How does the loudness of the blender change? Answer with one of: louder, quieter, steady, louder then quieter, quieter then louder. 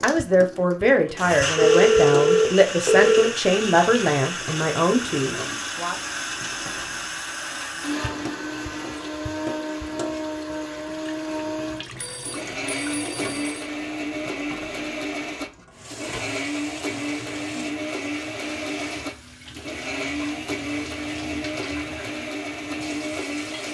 steady.